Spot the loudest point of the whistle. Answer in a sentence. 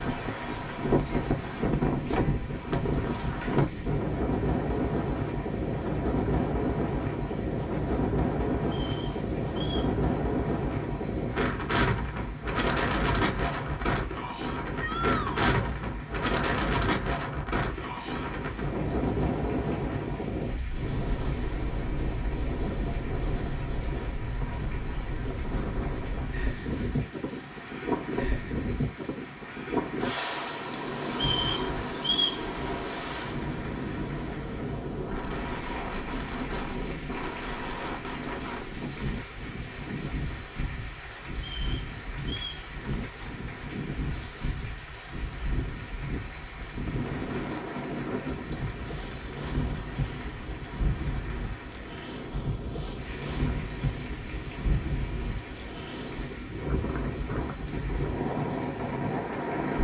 The volume of the whistle peaks at 32 seconds.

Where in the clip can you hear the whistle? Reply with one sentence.
You can hear the whistle from 8.7 to 9.9 s, from 31.1 to 32.5 s and from 41.4 to 42.6 s.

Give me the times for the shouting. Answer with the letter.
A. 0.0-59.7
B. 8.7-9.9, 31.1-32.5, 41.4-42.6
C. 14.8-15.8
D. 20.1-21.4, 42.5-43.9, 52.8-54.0
C.